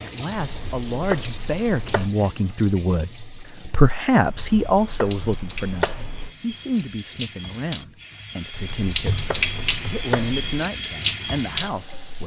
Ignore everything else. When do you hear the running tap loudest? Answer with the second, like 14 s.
9 s.